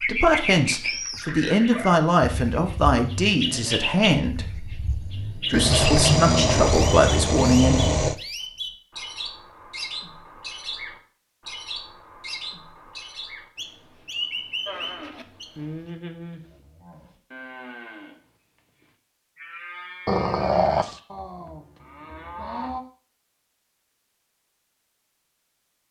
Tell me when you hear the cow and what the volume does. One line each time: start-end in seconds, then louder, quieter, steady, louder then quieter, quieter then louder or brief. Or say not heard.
14.7-22.9 quieter then louder.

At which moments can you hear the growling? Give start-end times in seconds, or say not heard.
5.5-8.2, 20.1-20.9.